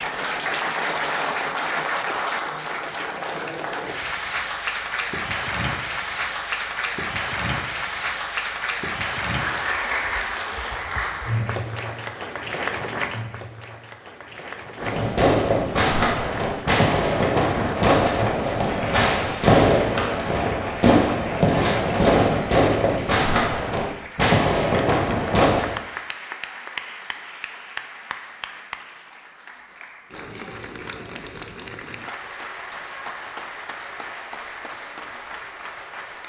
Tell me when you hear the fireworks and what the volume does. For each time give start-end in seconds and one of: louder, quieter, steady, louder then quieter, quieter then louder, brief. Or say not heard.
14.8-25.8 steady.